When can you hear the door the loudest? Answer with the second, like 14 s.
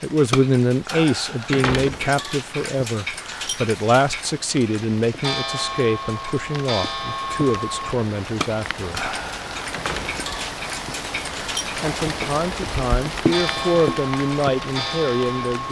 2 s.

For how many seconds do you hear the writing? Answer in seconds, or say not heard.
not heard.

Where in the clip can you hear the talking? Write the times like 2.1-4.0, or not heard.
0.0-9.1, 11.8-15.6.